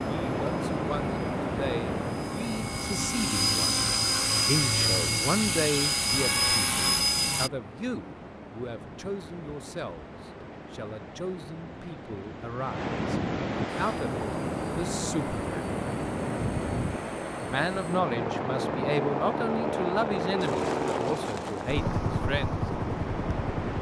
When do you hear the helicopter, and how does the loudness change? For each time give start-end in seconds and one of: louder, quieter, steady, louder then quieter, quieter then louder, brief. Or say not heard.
0.0-7.5 louder
13.9-23.7 louder.